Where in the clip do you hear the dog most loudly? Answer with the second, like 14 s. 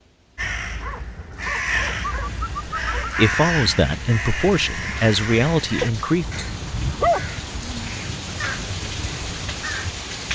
7 s.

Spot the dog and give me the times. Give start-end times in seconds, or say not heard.
0.8-3.2, 5.8-8.0.